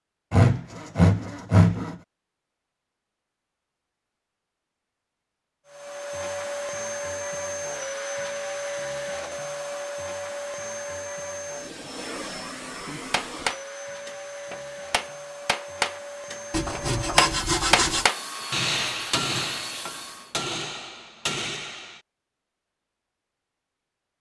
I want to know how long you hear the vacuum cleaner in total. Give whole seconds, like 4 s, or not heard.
15 s.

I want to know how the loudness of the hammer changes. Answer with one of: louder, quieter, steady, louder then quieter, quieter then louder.
louder then quieter.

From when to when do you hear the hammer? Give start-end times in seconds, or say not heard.
13.1-22.0.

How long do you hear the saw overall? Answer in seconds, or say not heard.
3 s.